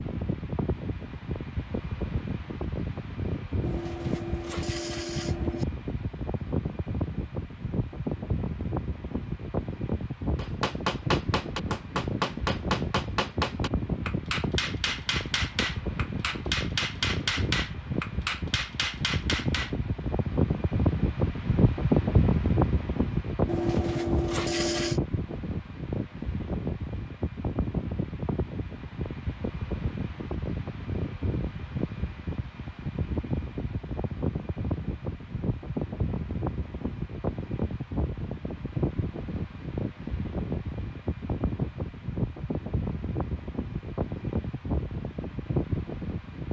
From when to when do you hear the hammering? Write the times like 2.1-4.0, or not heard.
10.3-19.8.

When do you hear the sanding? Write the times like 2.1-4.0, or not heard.
3.6-5.7, 23.4-25.0.